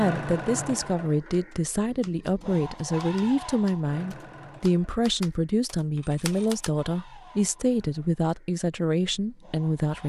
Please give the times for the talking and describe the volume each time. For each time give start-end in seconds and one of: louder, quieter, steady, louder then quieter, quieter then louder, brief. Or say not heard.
0.0-10.0 steady.